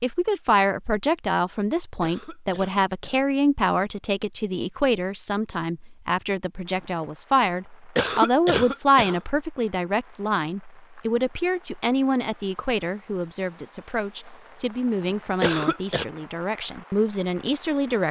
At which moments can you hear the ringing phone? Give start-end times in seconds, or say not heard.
not heard.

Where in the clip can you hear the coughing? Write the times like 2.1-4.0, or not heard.
2.0-3.2, 8.0-9.2, 15.4-16.1.